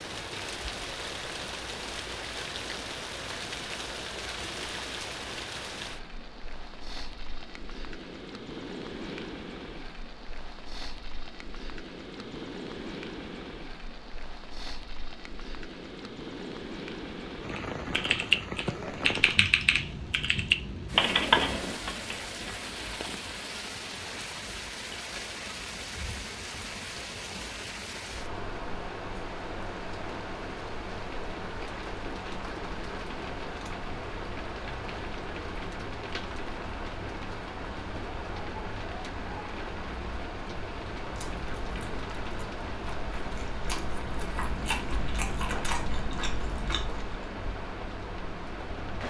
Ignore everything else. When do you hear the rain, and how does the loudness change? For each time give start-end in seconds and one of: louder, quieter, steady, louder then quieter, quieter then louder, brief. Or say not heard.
0.0-49.0 steady.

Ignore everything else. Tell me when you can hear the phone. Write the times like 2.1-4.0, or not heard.
not heard.